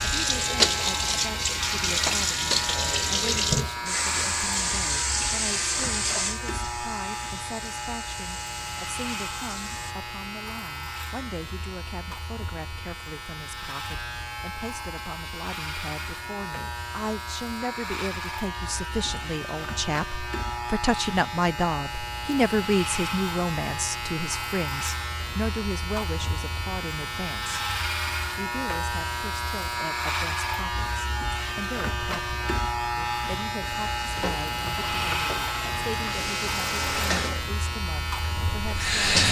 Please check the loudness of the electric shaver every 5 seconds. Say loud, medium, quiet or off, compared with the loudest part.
loud, medium, medium, medium, loud, loud, loud, loud.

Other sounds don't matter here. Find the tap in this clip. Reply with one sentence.
You can hear the tap from 0.0 to 9.9 s and from 33.6 to 39.2 s.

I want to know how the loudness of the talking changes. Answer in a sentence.
The volume of the talking goes up, then down.